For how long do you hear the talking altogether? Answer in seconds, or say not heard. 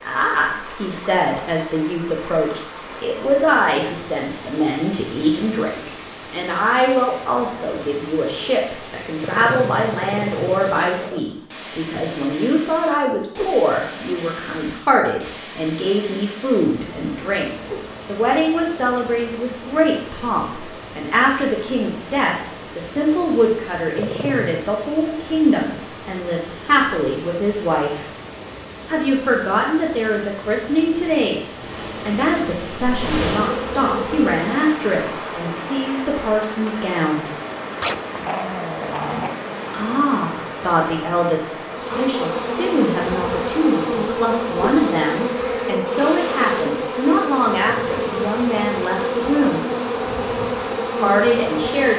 47 s.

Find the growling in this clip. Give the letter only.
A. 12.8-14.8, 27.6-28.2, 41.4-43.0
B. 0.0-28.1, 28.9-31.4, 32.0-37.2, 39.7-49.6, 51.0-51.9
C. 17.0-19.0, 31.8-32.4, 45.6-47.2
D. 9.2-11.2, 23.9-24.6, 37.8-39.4
D.